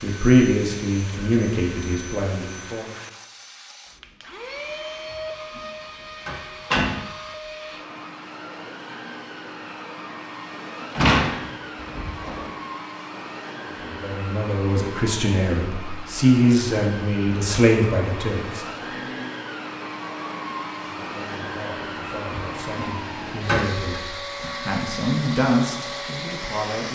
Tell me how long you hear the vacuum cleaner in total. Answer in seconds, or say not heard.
27 s.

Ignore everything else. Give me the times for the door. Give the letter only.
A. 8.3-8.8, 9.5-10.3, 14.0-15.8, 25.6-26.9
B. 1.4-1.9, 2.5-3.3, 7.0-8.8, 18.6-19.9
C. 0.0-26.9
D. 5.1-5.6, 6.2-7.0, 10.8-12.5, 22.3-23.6
D.